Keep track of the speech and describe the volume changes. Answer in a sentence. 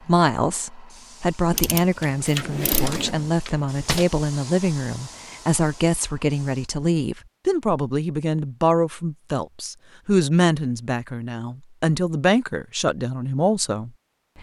The loudness of the speech stays about the same.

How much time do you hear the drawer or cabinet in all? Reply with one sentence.
You can hear the drawer or cabinet for 2 seconds altogether.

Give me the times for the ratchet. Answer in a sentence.
You can hear the ratchet from 1.5 to 3.1 s.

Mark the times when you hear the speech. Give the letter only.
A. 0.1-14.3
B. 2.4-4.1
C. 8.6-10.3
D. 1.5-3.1
A.